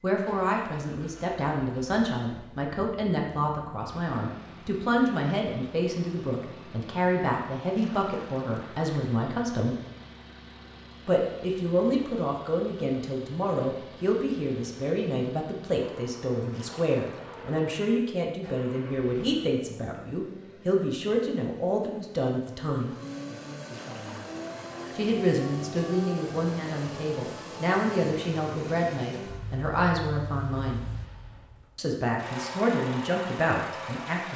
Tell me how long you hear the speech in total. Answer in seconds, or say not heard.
30 s.